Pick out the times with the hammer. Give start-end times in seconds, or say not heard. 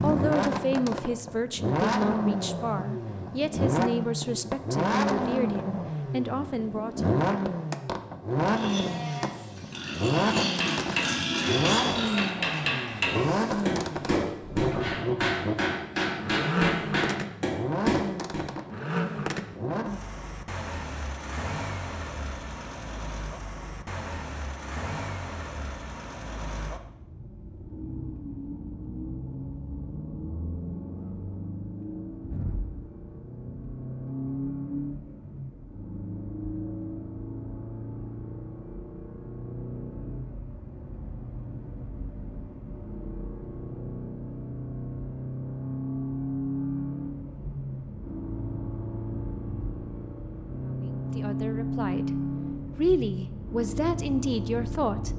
10.3-18.5.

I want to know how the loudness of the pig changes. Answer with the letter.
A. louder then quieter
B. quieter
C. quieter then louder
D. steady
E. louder
A.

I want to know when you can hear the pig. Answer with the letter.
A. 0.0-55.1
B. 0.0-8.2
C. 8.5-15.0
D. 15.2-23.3
C.